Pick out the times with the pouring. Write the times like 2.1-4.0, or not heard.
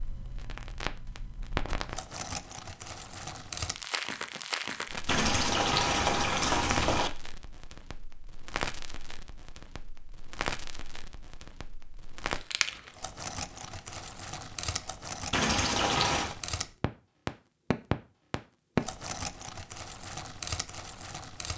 5.0-7.1, 15.3-16.4.